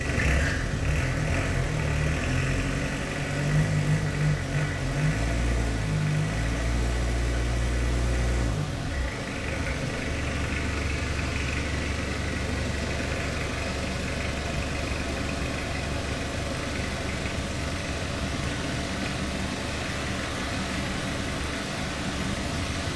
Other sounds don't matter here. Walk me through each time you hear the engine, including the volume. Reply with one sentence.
You can hear the engine from 0.0 to 22.9 s, getting quieter.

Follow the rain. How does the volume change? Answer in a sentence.
The volume of the rain goes up.